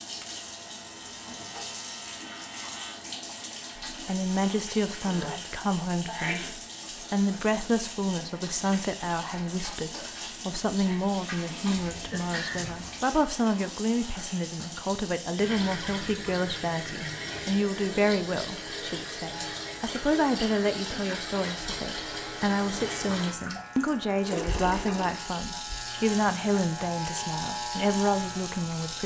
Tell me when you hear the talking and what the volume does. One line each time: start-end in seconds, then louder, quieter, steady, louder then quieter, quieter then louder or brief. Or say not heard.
3.9-29.0 steady.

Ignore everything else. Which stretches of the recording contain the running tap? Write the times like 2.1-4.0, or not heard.
0.0-29.0.